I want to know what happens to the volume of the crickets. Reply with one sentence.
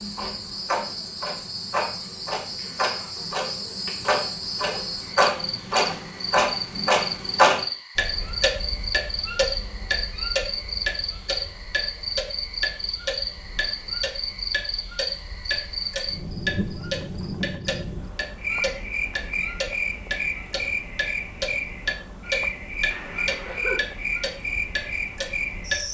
The loudness of the crickets stays about the same.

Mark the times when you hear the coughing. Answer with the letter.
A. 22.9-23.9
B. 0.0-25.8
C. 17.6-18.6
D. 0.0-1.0
A.